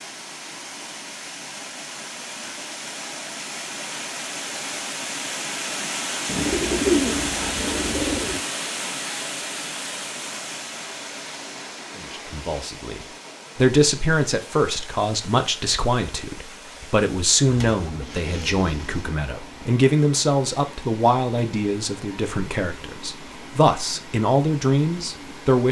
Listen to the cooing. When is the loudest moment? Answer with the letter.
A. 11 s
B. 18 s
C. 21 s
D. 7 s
D.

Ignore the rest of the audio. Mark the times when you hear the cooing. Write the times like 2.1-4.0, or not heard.
6.2-8.4, 17.4-19.1.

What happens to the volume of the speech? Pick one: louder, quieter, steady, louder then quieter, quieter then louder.
steady.